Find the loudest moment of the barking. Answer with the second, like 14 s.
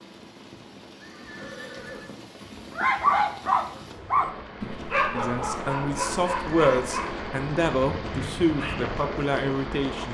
3 s.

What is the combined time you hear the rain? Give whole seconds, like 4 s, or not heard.
10 s.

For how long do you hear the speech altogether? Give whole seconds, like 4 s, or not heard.
5 s.